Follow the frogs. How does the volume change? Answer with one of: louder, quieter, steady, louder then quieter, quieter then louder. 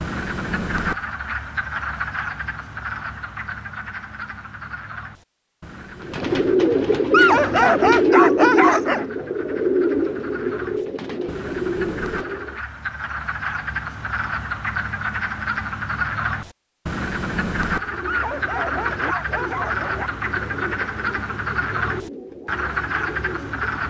quieter then louder.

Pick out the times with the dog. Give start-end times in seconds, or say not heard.
7.1-9.1, 18.1-20.1.